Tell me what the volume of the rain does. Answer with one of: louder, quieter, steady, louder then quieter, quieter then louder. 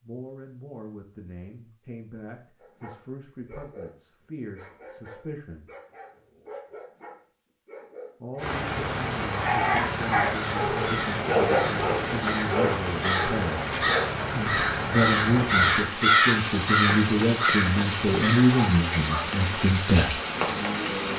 steady.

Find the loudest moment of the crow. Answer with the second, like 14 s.
16 s.